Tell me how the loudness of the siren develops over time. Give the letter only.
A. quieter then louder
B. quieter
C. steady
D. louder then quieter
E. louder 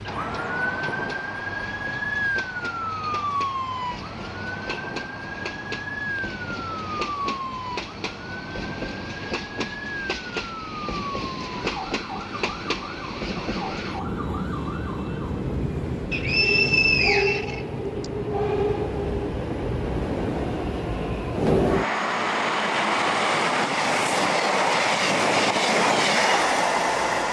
B.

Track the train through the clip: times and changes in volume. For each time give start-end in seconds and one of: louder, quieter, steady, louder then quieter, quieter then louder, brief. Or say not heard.
0.0-27.2 louder.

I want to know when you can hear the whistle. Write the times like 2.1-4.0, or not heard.
16.1-18.1.